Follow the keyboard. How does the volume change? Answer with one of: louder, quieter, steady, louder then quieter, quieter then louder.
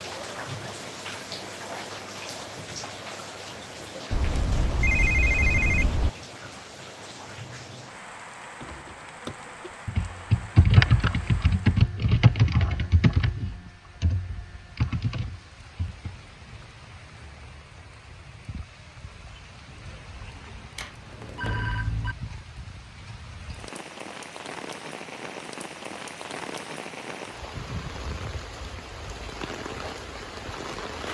louder then quieter.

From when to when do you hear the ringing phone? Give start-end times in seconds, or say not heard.
4.1-6.1, 20.8-22.1.